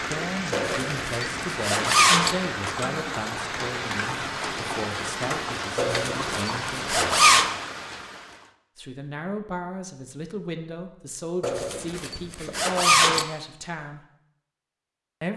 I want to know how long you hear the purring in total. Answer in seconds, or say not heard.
not heard.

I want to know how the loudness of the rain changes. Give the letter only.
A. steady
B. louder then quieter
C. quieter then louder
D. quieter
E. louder
A.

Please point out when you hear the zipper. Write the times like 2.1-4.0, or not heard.
0.5-2.4, 5.8-7.5, 11.4-13.2.